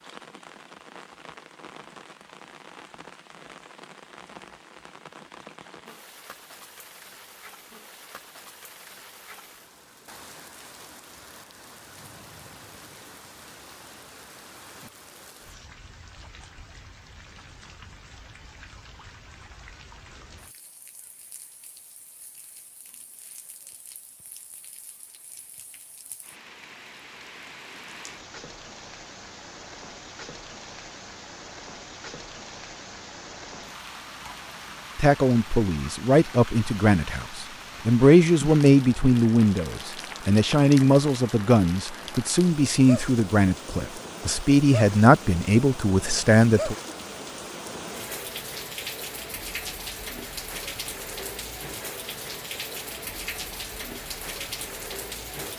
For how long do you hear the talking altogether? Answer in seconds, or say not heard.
12 s.